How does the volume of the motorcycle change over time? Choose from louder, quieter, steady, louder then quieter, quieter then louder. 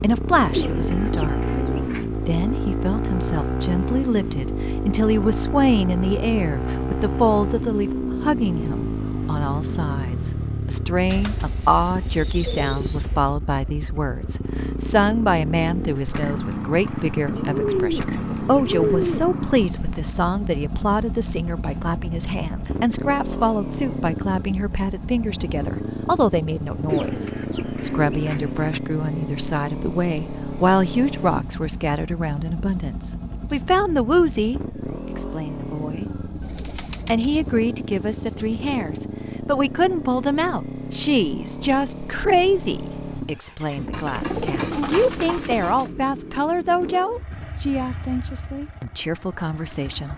quieter.